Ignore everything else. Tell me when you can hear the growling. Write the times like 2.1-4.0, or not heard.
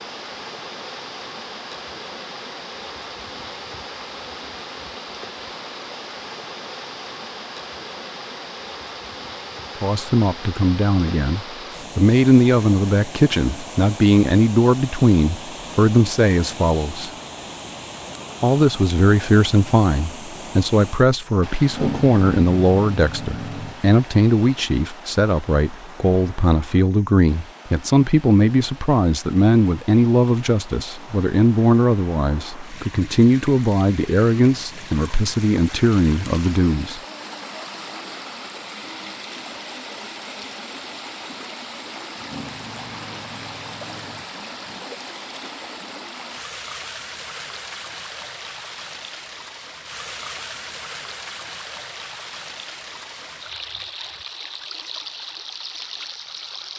21.6-23.8, 42.1-44.9.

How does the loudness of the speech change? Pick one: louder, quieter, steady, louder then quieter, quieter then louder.
steady.